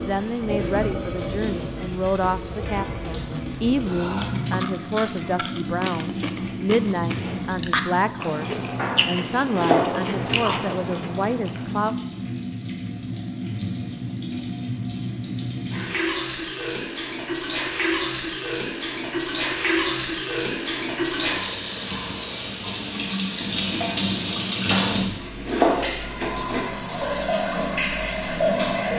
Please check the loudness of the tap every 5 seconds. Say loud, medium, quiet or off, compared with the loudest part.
medium, medium, medium, loud, loud, loud.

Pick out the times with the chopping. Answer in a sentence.
You can hear the chopping from 8.8 to 10.4 s and from 24.7 to 26.6 s.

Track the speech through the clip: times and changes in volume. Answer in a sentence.
You can hear the speech from 0.0 to 11.9 s, at a steady volume.